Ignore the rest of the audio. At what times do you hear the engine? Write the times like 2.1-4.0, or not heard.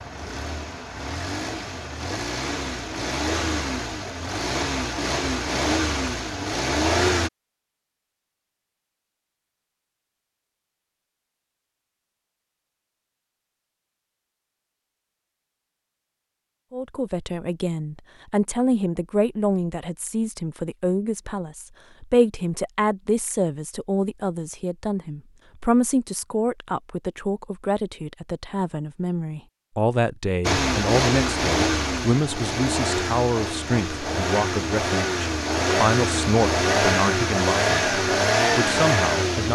0.0-7.3, 30.4-39.4.